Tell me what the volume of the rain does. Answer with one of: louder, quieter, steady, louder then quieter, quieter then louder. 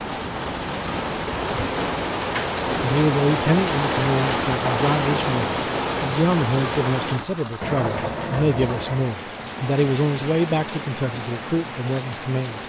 quieter.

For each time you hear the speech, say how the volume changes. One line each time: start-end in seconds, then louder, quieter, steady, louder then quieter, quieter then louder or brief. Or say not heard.
2.8-12.6 steady.